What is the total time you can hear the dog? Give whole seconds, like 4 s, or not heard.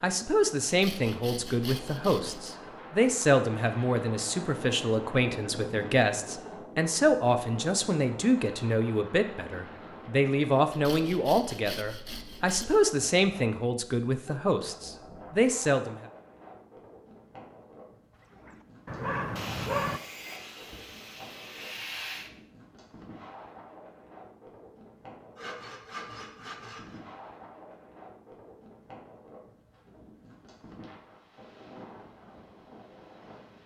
2 s.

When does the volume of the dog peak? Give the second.
20 s.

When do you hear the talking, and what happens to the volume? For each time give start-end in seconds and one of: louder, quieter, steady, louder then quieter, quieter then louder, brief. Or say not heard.
0.0-16.0 steady.